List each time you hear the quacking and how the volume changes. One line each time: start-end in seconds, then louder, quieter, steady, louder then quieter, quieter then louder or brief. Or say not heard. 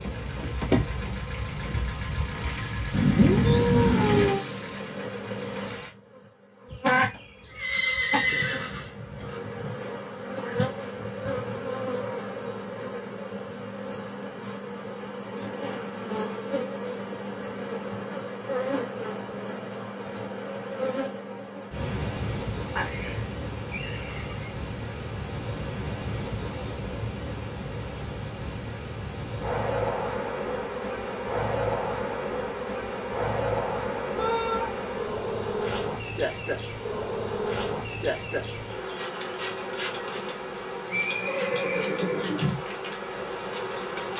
not heard.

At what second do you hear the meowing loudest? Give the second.
3 s.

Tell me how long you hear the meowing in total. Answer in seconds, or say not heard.
2 s.